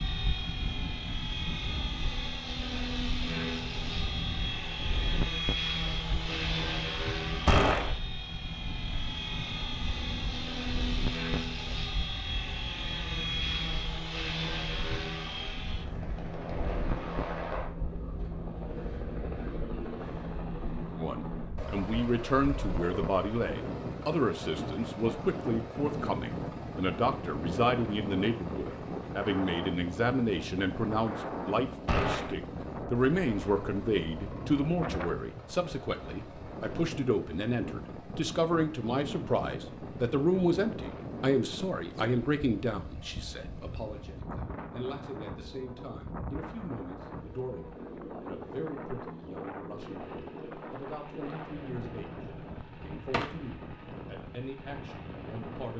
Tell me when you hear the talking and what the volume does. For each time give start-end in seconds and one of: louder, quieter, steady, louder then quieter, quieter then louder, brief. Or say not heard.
20.9-55.7 quieter.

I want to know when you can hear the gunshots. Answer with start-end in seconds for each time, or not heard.
7.5-8.0, 31.9-32.4, 52.1-53.5.